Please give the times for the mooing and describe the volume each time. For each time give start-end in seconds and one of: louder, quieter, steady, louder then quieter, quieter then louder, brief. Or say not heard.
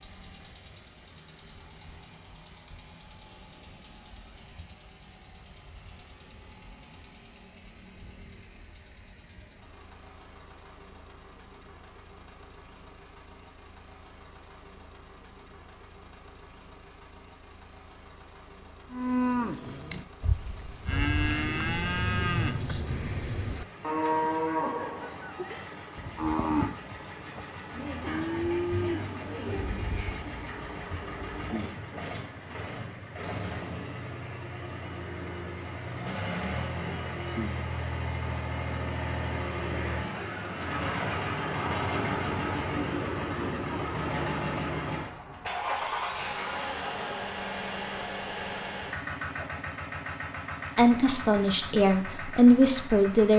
18.9-30.2 steady.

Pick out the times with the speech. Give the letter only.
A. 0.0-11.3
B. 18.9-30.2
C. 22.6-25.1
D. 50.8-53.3
D.